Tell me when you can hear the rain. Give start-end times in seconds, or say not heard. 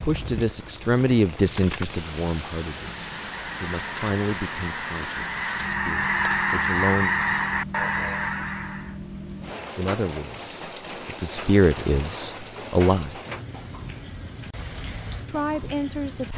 0.0-16.3.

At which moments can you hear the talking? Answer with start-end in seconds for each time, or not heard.
0.0-7.2, 9.8-13.2, 15.2-16.3.